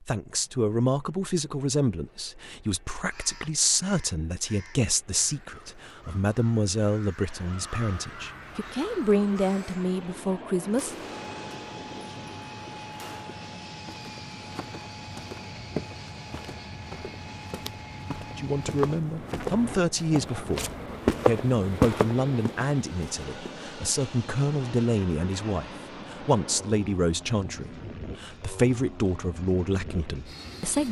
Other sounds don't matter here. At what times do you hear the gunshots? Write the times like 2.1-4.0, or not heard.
10.6-13.3.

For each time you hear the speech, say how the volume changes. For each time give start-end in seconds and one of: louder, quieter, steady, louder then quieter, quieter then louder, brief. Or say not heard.
0.0-10.9 steady
18.4-30.8 steady.